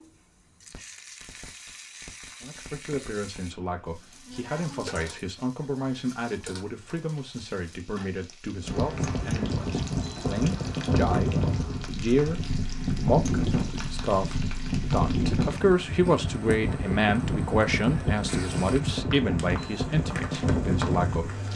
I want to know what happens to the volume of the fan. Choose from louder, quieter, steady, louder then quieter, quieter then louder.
steady.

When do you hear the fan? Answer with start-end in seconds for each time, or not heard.
8.6-21.5.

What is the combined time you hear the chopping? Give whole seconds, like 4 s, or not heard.
not heard.